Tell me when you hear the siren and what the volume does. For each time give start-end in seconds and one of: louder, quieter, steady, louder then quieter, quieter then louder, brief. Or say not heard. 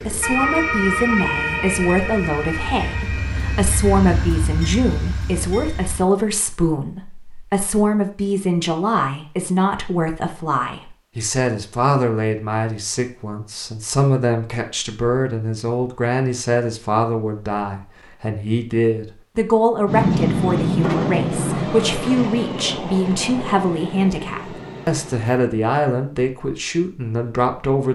0.0-4.0 quieter.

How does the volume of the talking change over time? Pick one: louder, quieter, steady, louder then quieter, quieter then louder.
steady.